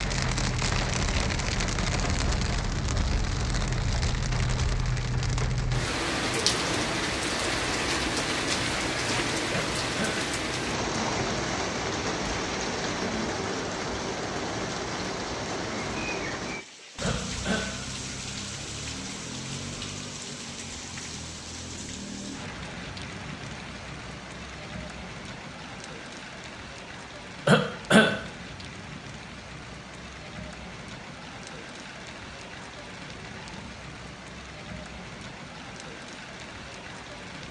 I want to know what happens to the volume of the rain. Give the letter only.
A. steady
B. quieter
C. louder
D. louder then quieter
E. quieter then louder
B.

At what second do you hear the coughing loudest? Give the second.
28 s.